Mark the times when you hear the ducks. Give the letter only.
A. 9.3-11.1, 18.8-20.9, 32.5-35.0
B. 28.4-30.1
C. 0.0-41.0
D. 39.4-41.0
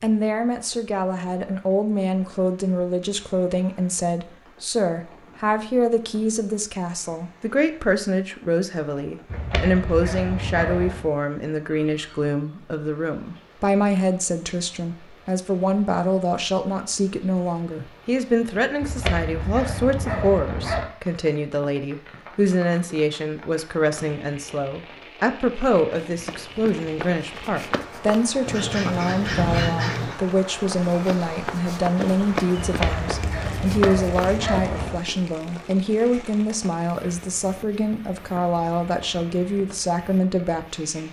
B.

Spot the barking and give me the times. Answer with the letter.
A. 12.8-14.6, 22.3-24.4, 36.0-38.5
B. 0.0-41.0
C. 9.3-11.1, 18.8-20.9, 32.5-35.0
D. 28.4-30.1
C.